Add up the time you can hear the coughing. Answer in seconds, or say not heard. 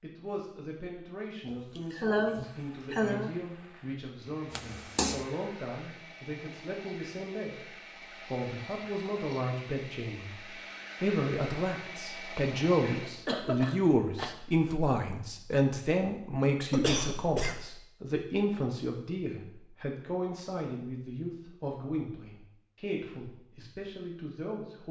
4 s.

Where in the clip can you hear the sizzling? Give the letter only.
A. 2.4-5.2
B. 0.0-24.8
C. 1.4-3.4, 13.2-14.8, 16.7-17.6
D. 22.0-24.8
A.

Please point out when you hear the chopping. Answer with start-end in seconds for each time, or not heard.
not heard.